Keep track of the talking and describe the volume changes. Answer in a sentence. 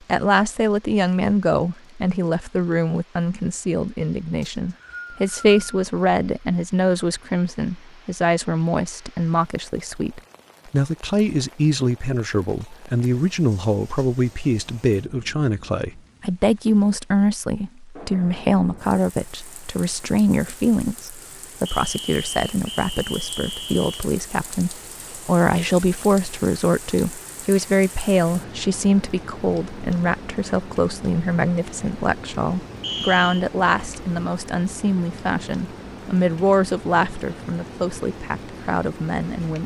The loudness of the talking stays about the same.